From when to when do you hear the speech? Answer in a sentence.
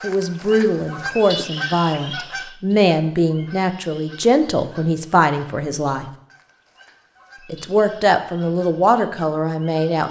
The speech can be heard from 0.0 to 6.1 s and from 7.5 to 10.0 s.